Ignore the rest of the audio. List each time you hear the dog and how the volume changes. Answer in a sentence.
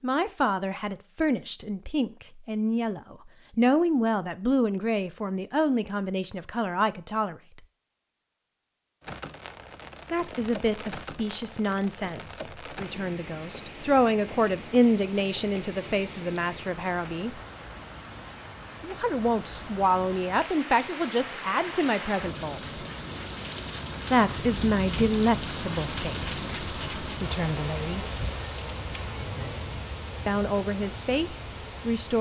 You can't hear the dog here.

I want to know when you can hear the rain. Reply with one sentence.
You can hear the rain from 9.0 to 32.1 s.